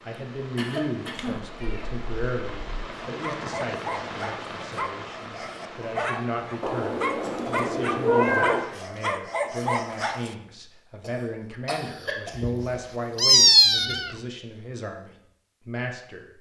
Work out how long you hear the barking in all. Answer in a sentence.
The barking can be heard for 7 seconds in total.